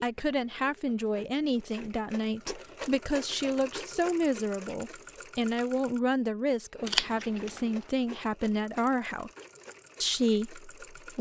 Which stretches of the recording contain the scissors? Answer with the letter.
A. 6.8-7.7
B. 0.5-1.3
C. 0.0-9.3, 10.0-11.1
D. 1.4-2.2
A.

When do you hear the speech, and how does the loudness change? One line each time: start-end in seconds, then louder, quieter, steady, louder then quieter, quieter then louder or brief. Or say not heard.
0.0-9.3 steady
10.0-11.1 brief.